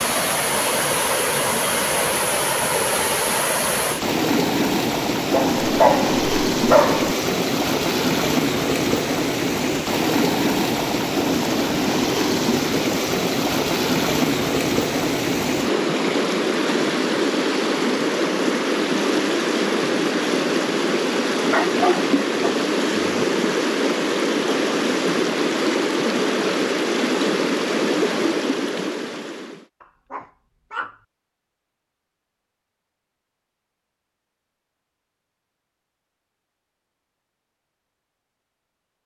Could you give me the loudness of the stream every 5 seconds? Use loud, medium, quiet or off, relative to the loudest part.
loud, loud, loud, loud, loud, loud, off, off.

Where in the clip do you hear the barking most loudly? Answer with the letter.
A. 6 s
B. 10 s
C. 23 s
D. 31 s
A.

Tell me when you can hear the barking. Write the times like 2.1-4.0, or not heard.
5.3-7.2, 21.5-23.2, 29.8-30.9.